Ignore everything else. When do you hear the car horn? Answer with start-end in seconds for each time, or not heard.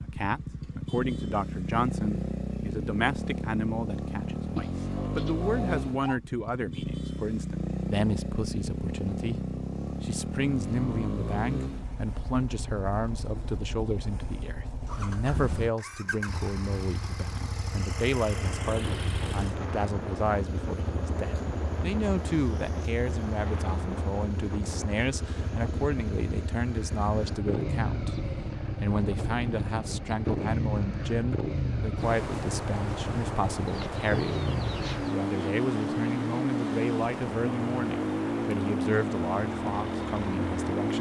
not heard.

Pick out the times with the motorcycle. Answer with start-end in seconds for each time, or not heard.
0.0-40.9.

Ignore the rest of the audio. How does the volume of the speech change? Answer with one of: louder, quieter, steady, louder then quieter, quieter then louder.
steady.